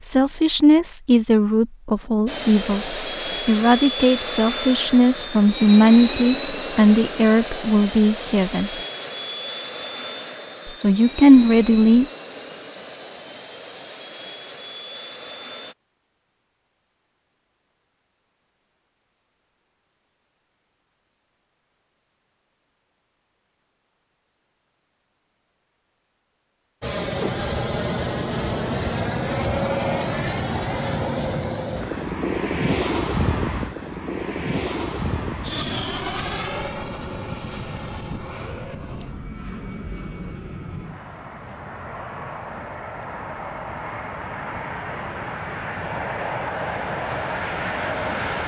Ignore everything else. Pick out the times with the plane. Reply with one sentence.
The plane can be heard from 2.2 to 15.8 s and from 26.8 to 48.4 s.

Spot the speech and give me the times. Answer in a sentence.
The speech can be heard from 0.0 to 8.7 s and from 10.7 to 12.1 s.